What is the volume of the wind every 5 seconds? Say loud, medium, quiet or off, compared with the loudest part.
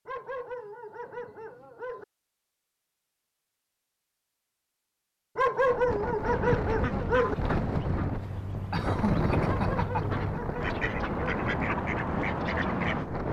off, loud, loud.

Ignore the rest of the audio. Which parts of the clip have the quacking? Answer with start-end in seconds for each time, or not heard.
6.3-13.1.